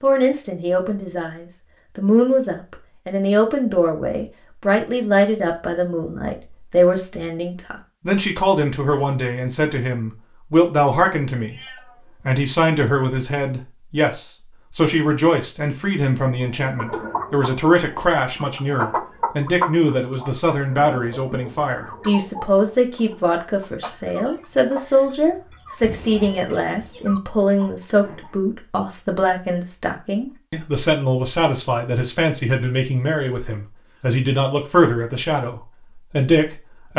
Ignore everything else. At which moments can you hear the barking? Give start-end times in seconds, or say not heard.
not heard.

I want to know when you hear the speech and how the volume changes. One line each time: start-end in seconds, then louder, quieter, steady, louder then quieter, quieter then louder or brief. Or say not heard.
0.0-11.6 steady
12.2-36.9 steady.